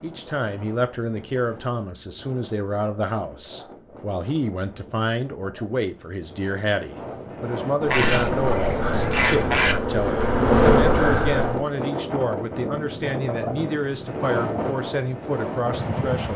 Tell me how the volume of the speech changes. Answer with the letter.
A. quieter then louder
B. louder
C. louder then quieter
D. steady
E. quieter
D.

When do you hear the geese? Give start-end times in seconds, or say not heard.
7.8-9.8.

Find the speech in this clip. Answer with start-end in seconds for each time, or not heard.
0.0-16.3.